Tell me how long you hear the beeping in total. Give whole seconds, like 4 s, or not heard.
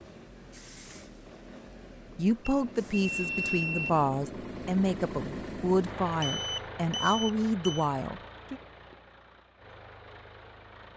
3 s.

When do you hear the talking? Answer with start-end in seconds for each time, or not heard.
2.1-8.6.